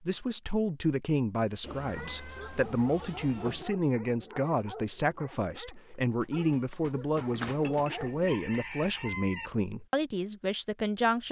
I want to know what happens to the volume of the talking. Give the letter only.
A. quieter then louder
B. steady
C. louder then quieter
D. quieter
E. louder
B.